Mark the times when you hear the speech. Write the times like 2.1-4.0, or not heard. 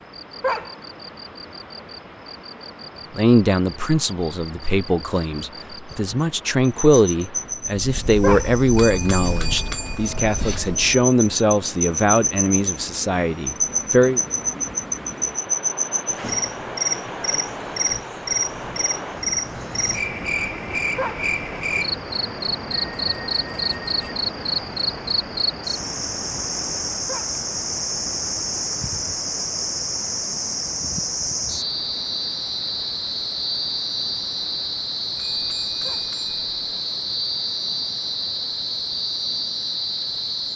3.1-14.2.